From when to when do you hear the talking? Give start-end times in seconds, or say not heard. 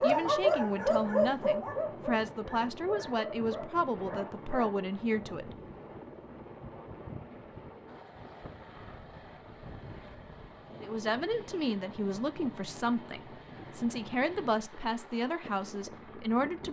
0.0-5.5, 10.8-16.6.